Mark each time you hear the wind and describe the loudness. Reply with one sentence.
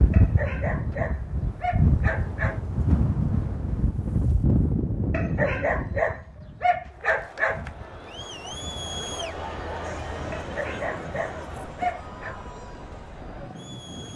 The wind can be heard from 0.0 to 14.1 s, getting quieter.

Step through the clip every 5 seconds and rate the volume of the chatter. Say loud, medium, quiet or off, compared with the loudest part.
off, loud, loud.